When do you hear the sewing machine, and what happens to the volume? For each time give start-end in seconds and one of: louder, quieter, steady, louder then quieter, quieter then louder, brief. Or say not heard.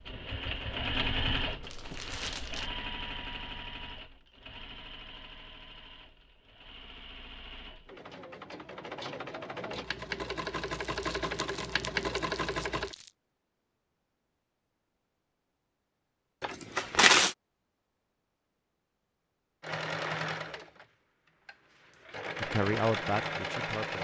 0.0-12.9 quieter then louder
19.6-23.9 quieter then louder.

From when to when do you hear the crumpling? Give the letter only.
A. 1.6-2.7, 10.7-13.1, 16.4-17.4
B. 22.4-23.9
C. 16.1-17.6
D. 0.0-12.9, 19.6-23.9
A.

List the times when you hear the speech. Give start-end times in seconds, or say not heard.
22.4-23.9.